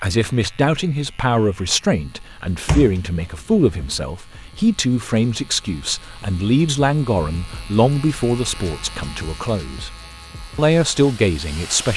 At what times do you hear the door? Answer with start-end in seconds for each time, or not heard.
2.6-4.0.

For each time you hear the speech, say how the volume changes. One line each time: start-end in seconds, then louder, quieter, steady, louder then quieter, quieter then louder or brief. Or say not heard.
0.0-9.9 steady
10.6-11.9 brief.